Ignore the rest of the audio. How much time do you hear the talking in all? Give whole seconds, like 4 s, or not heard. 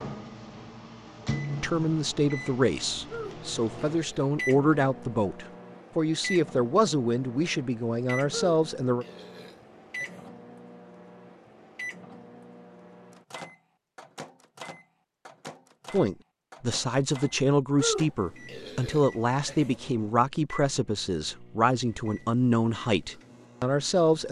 16 s.